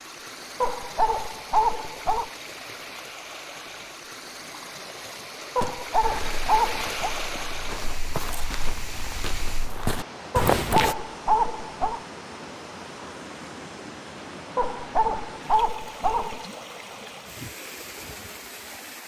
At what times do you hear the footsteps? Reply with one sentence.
You can hear the footsteps from 5.6 to 10.9 s.